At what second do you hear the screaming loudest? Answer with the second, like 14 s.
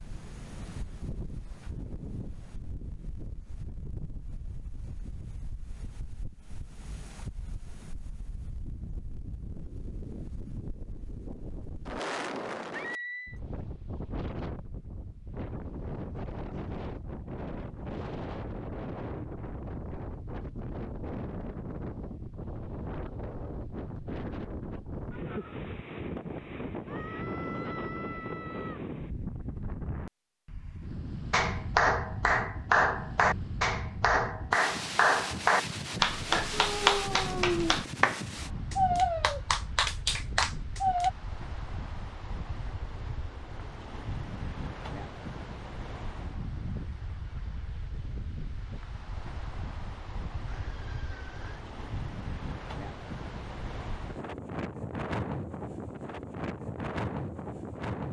13 s.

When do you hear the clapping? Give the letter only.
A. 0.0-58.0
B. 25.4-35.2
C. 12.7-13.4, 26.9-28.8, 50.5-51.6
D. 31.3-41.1
D.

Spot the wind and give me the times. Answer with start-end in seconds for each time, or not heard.
0.0-58.0.